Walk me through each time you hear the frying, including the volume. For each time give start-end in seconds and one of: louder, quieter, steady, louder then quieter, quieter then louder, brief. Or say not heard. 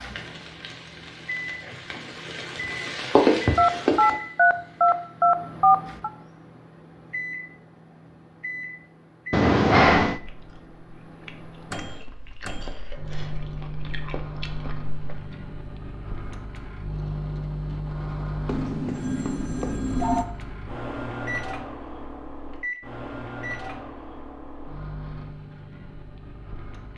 0.0-5.2 louder then quieter.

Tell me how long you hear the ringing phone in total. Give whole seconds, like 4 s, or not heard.
5 s.